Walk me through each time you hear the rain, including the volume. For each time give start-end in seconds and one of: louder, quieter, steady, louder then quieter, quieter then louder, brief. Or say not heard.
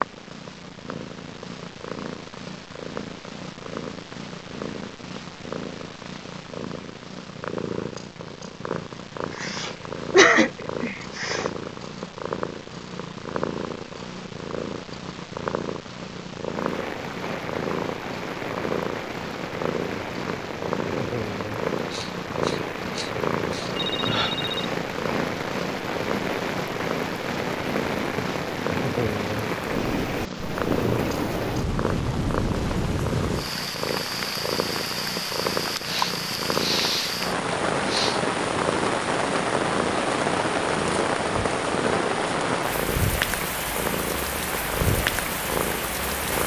16.4-46.4 louder.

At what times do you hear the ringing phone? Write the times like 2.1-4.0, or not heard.
23.7-24.6.